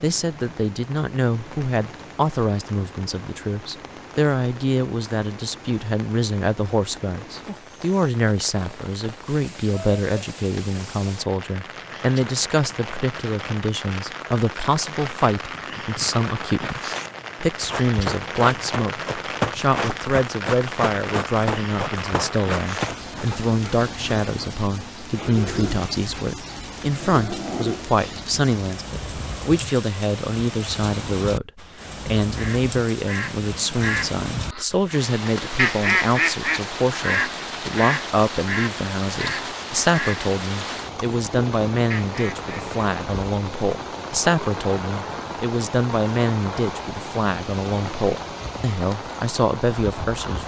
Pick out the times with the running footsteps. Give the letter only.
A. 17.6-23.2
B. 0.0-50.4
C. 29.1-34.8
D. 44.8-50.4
A.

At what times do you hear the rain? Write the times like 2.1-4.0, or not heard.
0.0-50.4.